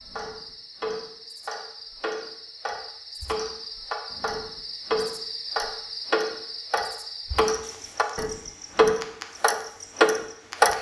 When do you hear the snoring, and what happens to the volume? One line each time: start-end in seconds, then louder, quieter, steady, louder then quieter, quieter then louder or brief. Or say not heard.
not heard.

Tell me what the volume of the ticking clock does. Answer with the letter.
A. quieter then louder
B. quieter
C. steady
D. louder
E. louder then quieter
D.